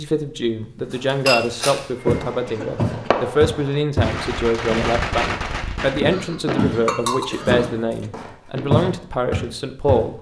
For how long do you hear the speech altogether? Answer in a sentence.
You can hear the speech for 10 seconds altogether.